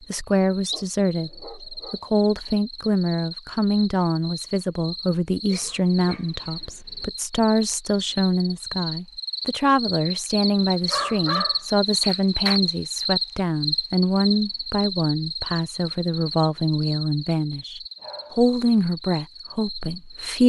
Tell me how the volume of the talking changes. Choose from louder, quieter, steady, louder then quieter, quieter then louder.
steady.